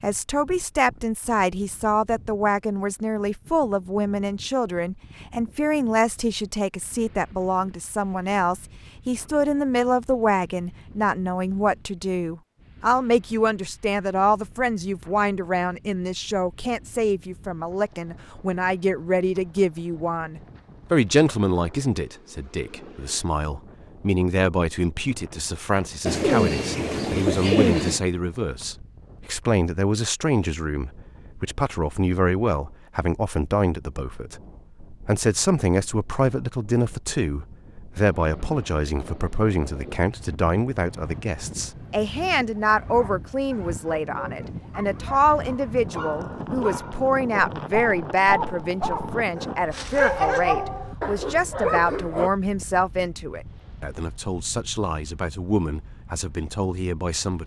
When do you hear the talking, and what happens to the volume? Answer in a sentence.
The talking can be heard from 0.0 to 57.4 s, at a steady volume.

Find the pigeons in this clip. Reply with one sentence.
You can hear the pigeons from 26.1 to 28.0 s.